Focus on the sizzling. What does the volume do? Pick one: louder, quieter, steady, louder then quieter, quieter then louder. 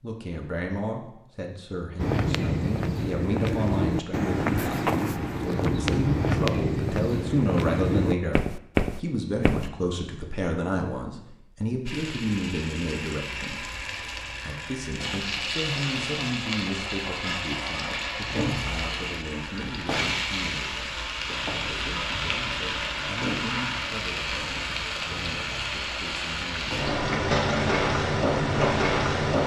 louder.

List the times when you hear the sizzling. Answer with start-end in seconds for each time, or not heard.
11.8-29.4.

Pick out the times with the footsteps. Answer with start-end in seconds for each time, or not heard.
1.9-9.7.